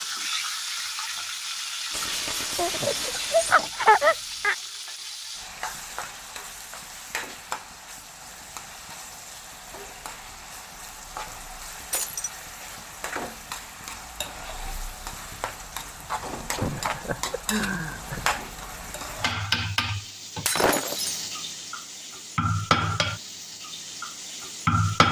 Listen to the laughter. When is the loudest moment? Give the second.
4 s.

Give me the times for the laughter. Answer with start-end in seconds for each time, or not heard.
2.5-4.5, 16.6-18.3.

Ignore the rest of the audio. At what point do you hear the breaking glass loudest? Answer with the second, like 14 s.
21 s.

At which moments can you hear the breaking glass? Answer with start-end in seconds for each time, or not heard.
1.9-3.6, 11.9-12.3, 20.4-21.2.